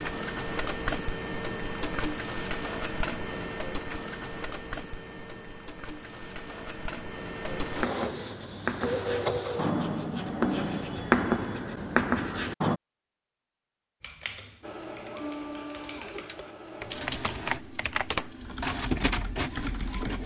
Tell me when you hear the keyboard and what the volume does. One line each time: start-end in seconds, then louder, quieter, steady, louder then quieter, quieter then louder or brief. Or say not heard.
14.0-20.2 louder then quieter.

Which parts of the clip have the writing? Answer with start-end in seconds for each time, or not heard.
7.5-12.8.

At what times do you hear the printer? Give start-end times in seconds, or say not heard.
0.0-9.8, 14.6-20.2.